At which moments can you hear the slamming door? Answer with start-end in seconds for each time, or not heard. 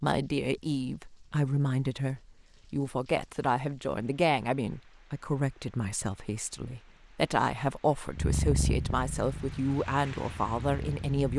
not heard.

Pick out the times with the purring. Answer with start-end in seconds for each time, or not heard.
8.2-11.3.